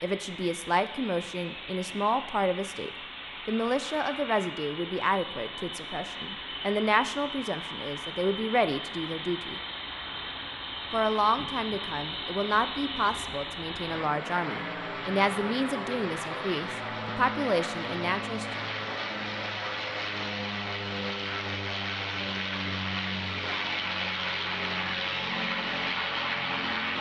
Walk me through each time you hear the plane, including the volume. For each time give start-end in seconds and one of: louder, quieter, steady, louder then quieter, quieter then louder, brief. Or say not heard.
0.0-26.9 louder.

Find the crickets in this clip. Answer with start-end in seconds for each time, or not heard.
not heard.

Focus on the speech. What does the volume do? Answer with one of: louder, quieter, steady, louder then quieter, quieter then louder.
steady.